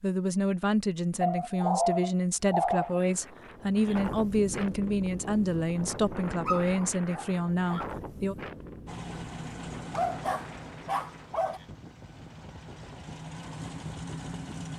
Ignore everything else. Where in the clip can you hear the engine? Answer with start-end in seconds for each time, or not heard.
8.8-14.7.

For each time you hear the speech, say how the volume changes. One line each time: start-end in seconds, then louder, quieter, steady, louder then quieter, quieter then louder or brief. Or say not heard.
0.0-8.3 steady.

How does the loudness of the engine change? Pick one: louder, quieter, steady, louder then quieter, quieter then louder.
quieter then louder.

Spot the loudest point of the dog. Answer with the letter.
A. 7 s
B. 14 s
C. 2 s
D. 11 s
C.